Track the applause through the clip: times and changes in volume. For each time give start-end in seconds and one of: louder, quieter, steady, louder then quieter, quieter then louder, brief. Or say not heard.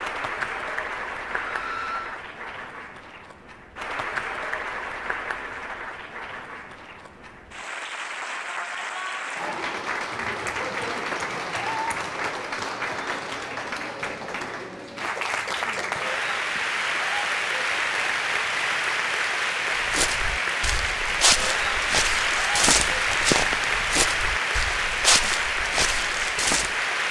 0.0-27.0 louder.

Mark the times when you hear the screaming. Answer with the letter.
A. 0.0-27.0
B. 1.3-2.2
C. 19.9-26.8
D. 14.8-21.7
B.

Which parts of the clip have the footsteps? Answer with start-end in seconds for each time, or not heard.
19.9-26.8.